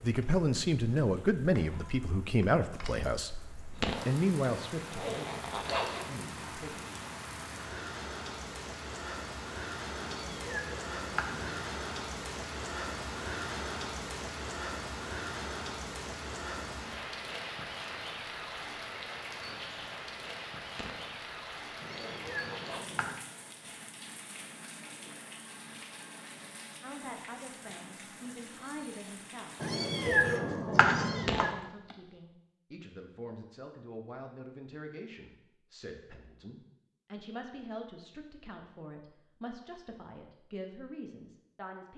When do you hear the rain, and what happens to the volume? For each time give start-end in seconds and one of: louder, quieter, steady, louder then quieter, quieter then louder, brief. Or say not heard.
0.0-30.4 louder then quieter.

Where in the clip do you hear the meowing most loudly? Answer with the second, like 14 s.
30 s.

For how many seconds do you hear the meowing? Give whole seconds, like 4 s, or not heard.
5 s.